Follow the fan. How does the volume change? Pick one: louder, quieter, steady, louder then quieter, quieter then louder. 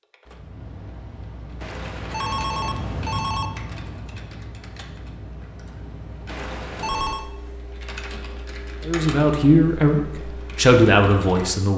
louder then quieter.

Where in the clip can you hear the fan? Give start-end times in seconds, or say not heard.
0.0-7.2.